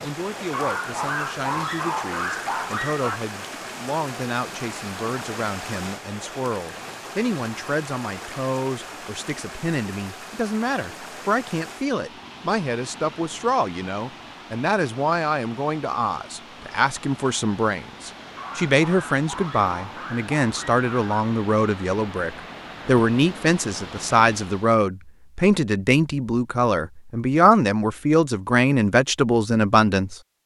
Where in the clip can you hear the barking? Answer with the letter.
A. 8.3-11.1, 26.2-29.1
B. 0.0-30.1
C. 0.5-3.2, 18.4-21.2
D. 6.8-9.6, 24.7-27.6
C.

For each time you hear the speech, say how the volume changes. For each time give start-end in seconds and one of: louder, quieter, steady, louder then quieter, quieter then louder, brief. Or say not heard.
0.0-30.1 louder.